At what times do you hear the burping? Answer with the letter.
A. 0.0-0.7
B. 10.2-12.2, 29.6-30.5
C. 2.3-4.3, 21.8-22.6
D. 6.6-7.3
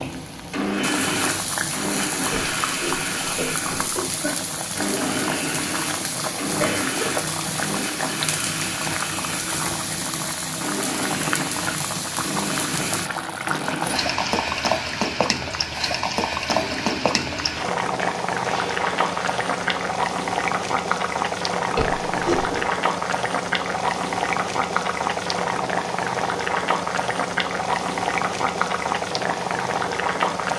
C.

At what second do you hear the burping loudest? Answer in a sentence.
The volume of the burping peaks at 22 seconds.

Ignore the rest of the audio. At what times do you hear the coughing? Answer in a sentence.
You can hear the coughing from 6.6 to 7.3 s.